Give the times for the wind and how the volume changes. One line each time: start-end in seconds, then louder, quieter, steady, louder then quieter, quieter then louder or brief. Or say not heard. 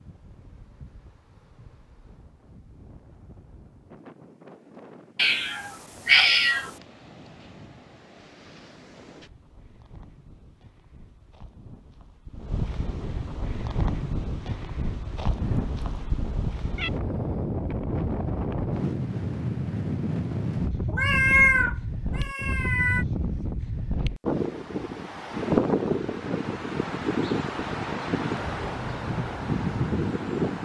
0.0-30.5 louder.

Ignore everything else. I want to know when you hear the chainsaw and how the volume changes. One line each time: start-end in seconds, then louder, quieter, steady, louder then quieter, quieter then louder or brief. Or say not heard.
not heard.